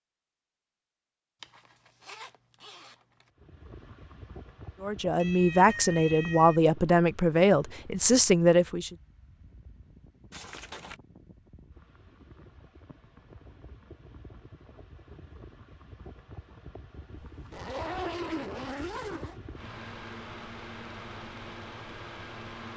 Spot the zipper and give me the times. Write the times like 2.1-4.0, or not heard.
1.4-3.0, 10.3-10.9, 17.4-19.4.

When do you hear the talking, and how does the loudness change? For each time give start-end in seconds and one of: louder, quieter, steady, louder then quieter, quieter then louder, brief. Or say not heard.
4.8-8.9 steady.